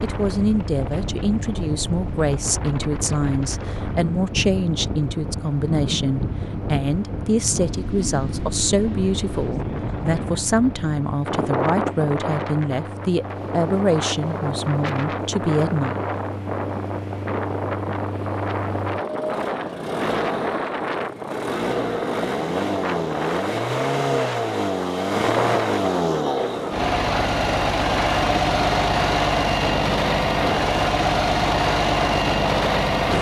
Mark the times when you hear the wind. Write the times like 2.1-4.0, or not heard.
0.0-33.1.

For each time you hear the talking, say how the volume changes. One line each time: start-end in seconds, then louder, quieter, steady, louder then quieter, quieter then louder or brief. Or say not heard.
0.0-16.0 steady.